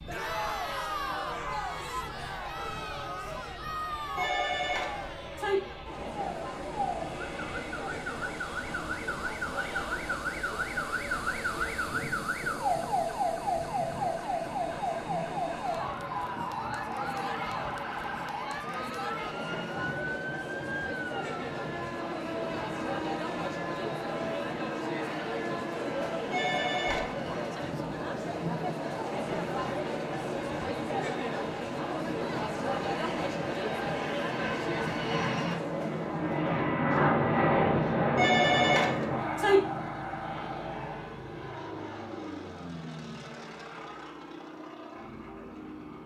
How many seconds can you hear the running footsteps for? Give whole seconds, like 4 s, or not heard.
not heard.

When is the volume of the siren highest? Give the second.
13 s.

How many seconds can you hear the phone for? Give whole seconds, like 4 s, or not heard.
4 s.